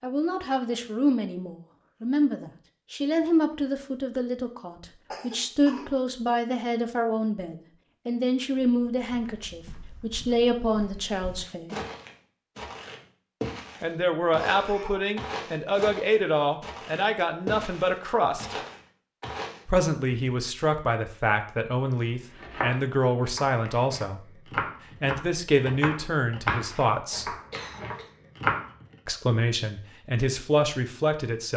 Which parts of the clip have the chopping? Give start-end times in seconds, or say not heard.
22.1-28.9.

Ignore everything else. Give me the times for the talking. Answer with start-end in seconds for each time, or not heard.
0.0-11.7, 13.8-18.6, 19.6-27.4, 29.1-31.5.